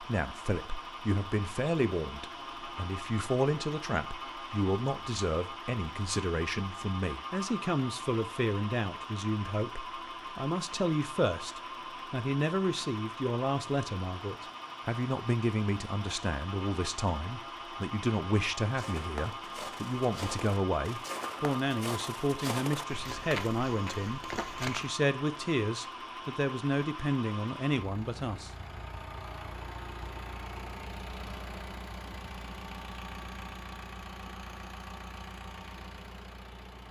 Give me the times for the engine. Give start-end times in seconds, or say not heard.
0.0-36.8.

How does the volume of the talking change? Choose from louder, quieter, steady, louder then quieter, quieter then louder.
steady.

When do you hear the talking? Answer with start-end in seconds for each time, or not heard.
0.0-28.5.